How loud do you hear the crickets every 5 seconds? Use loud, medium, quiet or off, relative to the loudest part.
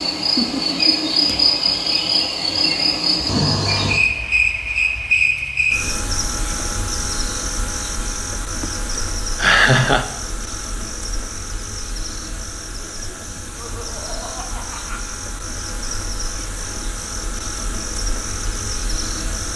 loud, medium, quiet, medium.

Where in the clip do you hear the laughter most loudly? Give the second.
10 s.